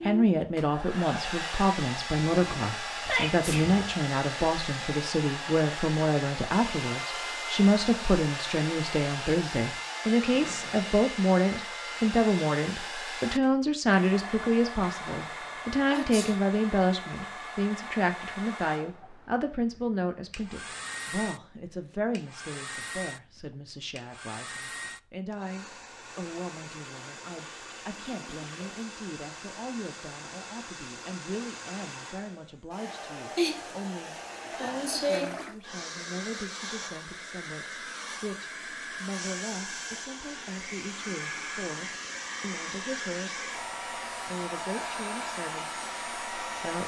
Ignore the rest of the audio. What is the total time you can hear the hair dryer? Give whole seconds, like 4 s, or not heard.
47 s.